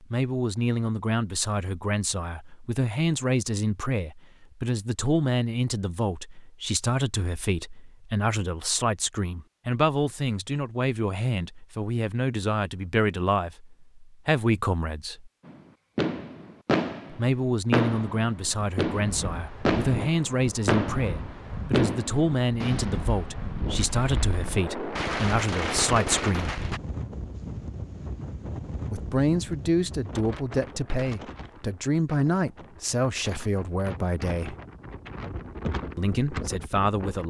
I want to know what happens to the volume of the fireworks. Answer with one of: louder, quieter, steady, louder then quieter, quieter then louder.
quieter then louder.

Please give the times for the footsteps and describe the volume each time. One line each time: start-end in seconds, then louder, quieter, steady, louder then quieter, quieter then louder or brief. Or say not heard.
not heard.